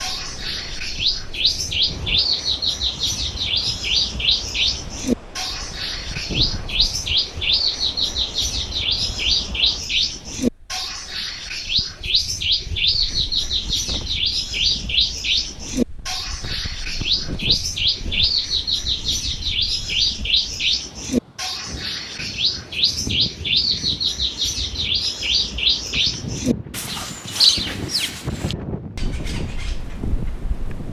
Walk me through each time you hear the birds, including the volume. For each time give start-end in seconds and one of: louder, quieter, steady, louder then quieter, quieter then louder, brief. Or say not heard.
0.0-30.8 steady.